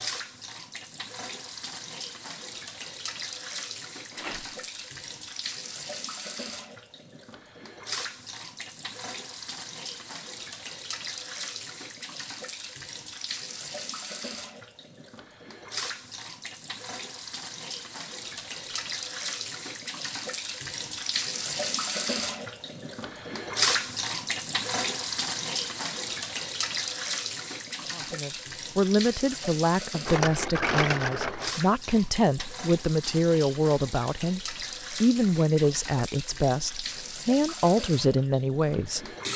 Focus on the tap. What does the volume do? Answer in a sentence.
The volume of the tap goes up, then down.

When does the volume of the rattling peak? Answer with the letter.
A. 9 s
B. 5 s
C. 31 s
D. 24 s
C.